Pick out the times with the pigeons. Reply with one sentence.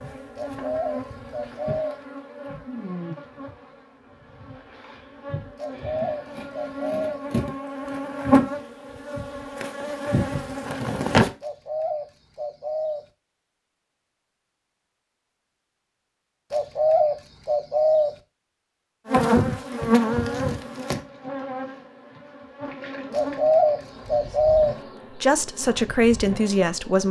You can hear the pigeons from 0.3 to 1.9 s, from 5.5 to 7.2 s, from 11.4 to 13.0 s, from 16.5 to 18.1 s and from 23.1 to 24.8 s.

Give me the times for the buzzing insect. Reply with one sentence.
The buzzing insect can be heard from 0.0 to 11.3 s and from 19.1 to 27.0 s.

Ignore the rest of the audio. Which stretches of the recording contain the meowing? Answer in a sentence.
You can't hear the meowing here.